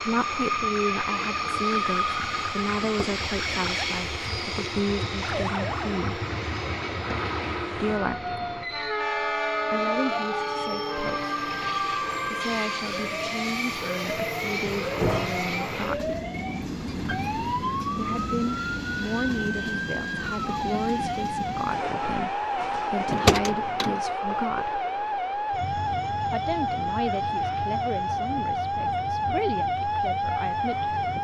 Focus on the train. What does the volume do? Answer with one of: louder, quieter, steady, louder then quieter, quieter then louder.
quieter.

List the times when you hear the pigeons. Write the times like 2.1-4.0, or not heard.
not heard.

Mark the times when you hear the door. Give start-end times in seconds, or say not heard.
2.8-3.7, 14.8-15.4, 23.1-23.9.